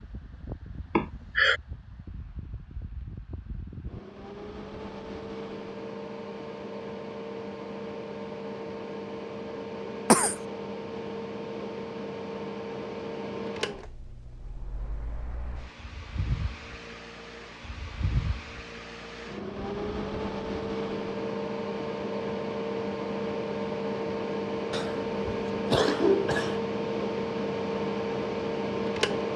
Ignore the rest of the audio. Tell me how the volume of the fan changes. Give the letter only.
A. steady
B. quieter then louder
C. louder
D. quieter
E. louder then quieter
C.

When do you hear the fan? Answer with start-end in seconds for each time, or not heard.
0.0-29.3.